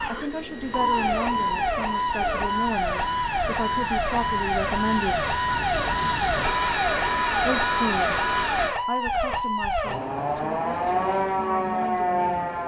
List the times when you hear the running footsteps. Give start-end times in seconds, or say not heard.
not heard.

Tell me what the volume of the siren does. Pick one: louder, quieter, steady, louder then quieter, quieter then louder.
steady.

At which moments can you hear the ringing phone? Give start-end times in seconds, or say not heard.
not heard.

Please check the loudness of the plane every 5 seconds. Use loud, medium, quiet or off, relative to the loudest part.
medium, loud, off.